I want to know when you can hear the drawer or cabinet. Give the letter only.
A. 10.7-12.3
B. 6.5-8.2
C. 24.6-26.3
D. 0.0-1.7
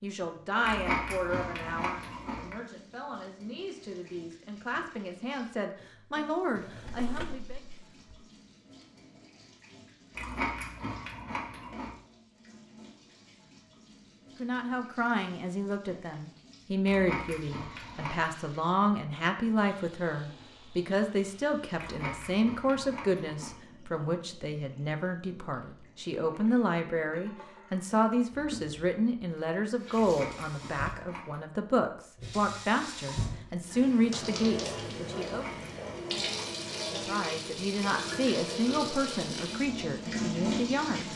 B.